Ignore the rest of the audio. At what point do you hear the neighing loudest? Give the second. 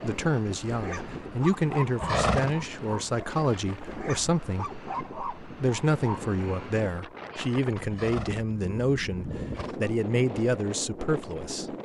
2 s.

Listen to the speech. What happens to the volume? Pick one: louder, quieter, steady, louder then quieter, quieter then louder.
steady.